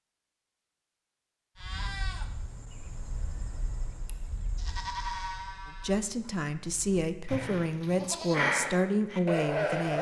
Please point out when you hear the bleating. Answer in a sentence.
The bleating can be heard from 1.6 to 9.9 s.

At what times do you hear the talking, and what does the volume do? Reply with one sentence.
The talking can be heard from 5.8 to 9.9 s, getting louder.